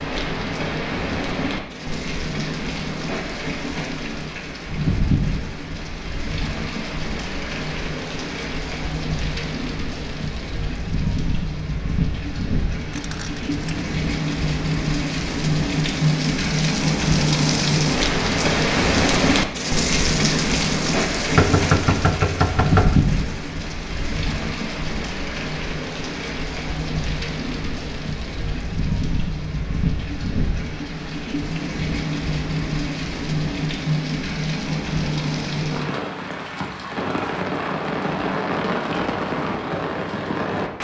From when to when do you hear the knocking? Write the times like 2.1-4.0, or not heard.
21.4-22.9.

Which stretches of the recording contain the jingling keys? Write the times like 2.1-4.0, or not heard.
12.9-13.8.